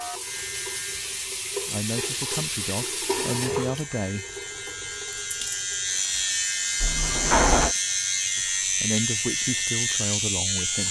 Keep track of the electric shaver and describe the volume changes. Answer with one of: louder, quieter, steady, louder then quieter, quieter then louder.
louder.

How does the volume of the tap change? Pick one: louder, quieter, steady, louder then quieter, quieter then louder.
quieter.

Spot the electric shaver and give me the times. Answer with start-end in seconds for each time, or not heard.
0.0-10.8.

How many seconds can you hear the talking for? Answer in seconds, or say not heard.
5 s.